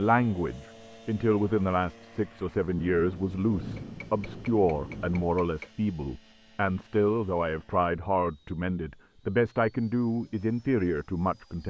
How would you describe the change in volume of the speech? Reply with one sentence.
The loudness of the speech stays about the same.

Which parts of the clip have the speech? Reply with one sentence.
You can hear the speech from 0.0 to 11.6 s.